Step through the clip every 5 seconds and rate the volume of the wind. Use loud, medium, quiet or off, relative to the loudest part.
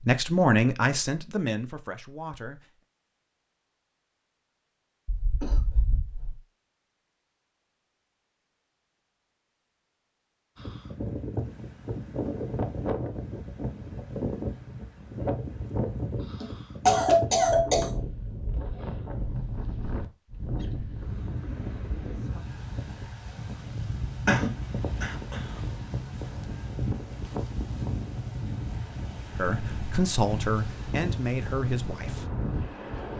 off, off, loud, loud, loud, loud, loud.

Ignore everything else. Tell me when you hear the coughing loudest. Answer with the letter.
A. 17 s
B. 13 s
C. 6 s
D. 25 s
A.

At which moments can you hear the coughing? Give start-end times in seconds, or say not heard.
5.0-6.3, 16.4-17.9, 24.2-25.4.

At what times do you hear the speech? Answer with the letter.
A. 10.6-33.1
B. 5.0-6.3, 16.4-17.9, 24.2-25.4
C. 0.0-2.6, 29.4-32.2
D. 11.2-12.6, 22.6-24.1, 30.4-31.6
C.